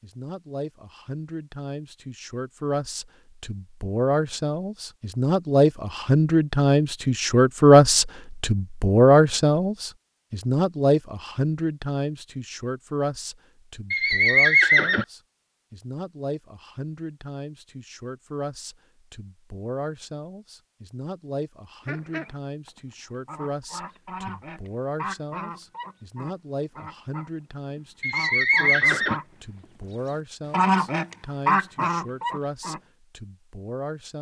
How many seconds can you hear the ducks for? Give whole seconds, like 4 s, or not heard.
10 s.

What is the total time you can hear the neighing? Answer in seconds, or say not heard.
2 s.